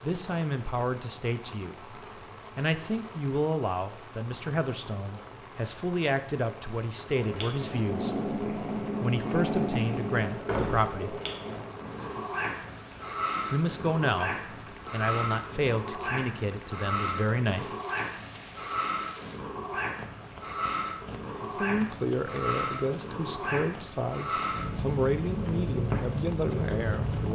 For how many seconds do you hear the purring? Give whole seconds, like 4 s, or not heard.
20 s.